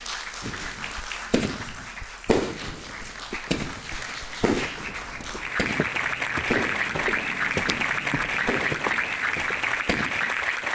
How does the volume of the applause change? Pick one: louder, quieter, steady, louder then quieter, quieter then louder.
louder.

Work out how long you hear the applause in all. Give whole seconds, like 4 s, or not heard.
11 s.